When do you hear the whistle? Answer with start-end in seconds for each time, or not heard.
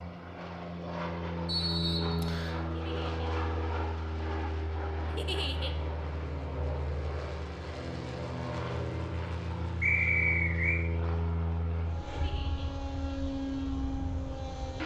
1.4-2.6, 9.8-10.8.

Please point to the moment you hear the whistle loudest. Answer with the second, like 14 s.
10 s.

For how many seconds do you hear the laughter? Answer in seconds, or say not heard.
2 s.